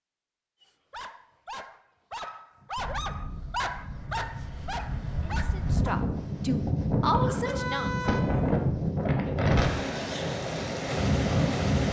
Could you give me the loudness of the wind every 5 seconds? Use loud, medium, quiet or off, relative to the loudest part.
quiet, loud, loud.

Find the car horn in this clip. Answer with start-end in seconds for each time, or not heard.
7.5-8.6.